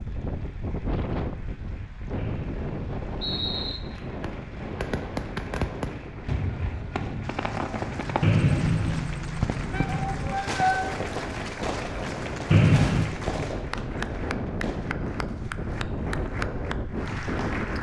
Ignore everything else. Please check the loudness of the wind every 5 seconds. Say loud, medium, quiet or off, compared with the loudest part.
loud, medium, loud, loud.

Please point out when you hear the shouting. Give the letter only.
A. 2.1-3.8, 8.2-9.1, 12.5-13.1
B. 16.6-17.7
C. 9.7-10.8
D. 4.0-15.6
C.